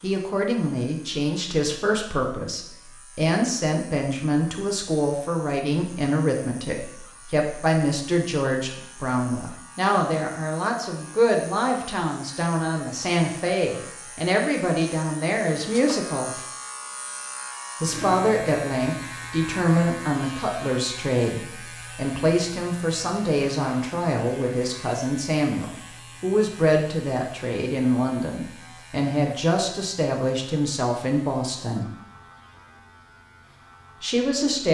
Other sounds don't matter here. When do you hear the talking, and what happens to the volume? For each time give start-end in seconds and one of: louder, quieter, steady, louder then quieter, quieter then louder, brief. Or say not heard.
0.0-16.3 steady
17.8-31.9 steady
34.0-34.6 brief.